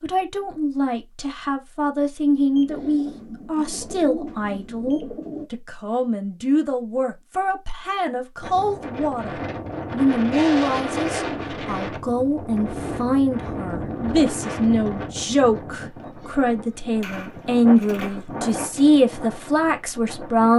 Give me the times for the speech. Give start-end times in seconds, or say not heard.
0.0-20.5.